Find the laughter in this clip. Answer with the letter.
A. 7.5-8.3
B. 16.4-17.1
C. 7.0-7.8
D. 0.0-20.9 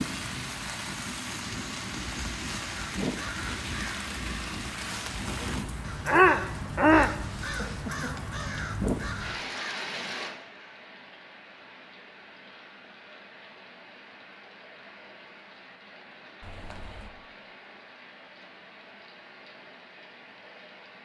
A.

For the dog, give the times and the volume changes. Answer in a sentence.
You can't hear the dog here.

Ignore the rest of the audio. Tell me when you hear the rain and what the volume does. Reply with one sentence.
The rain can be heard from 0.0 to 20.9 s, getting quieter.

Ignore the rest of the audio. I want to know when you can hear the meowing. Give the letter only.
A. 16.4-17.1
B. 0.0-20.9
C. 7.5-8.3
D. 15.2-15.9
A.